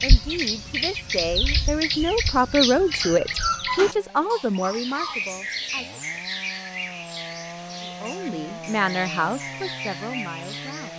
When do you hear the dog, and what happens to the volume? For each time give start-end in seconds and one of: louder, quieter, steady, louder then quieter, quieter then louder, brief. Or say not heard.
not heard.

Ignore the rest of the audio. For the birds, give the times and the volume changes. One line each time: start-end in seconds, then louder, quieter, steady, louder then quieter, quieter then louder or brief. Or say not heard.
0.0-10.9 quieter.